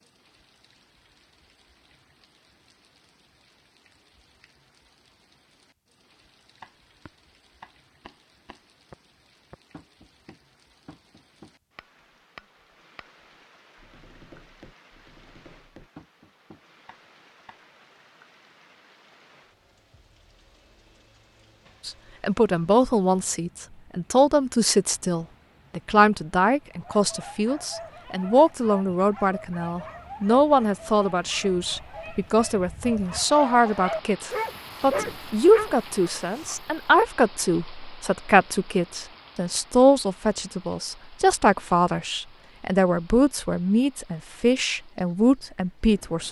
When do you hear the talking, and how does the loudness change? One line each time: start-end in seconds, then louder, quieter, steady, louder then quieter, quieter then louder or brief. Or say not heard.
21.9-46.2 steady.